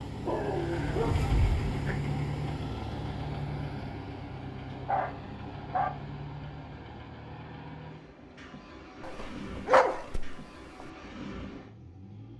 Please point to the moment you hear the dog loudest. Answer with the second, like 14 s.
10 s.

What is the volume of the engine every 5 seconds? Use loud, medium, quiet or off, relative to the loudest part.
loud, medium, medium.